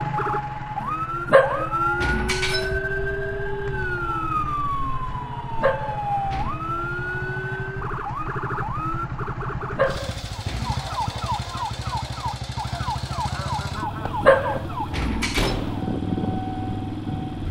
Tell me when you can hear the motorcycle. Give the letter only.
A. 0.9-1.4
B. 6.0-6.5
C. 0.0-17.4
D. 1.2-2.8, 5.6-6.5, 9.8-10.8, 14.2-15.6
C.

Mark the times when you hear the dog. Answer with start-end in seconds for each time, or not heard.
1.2-2.8, 5.6-6.5, 9.8-10.8, 14.2-15.6.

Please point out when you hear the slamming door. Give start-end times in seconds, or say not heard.
15.3-15.8.